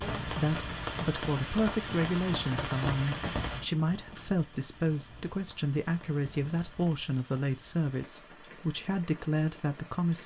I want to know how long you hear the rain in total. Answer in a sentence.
The rain can be heard for 10 seconds in total.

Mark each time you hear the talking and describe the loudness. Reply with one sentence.
You can hear the talking from 0.2 to 10.2 s, at a steady volume.